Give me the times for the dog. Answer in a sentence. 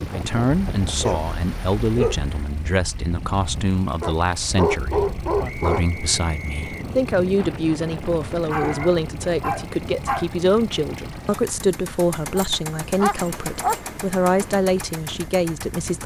The dog can be heard from 0.5 to 2.5 s, from 4.0 to 5.8 s, from 8.5 to 10.3 s and from 12.3 to 13.8 s.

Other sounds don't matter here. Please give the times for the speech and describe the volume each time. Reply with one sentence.
You can hear the speech from 0.1 to 16.0 s, at a steady volume.